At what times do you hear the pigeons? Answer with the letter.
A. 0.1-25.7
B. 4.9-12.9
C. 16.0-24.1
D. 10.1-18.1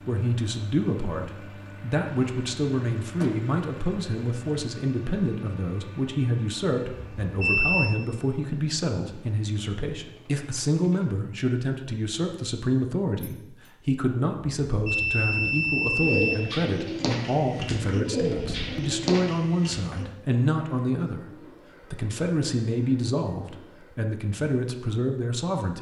C.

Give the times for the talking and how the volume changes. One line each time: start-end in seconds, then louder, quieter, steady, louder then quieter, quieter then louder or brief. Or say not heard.
0.1-25.7 steady.